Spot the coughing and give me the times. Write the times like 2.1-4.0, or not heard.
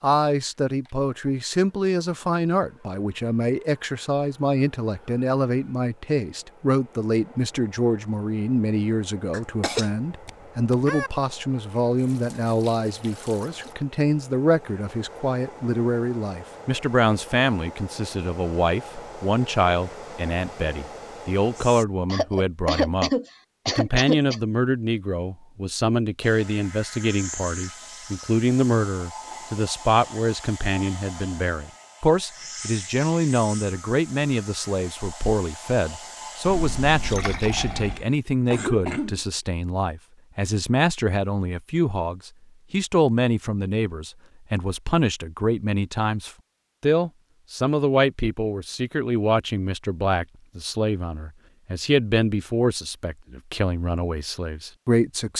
9.3-11.1, 22.1-24.4, 37.5-39.2.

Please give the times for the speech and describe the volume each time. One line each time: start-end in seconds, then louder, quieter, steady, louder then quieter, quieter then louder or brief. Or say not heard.
0.0-55.3 steady.